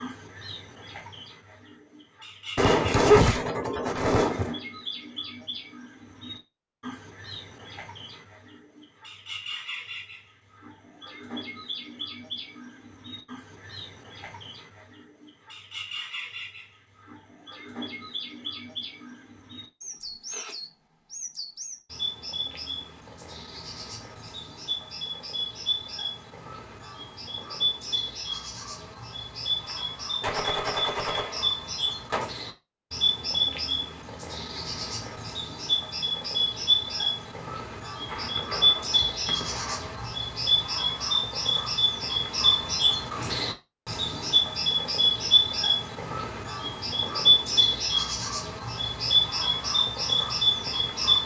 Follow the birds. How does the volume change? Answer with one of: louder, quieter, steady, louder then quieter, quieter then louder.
louder.